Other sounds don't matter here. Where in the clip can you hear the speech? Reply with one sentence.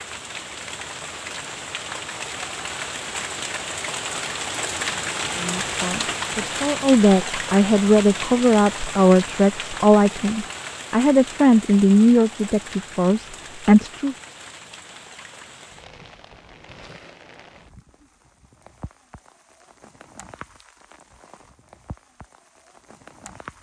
The speech can be heard from 5.3 to 14.2 s.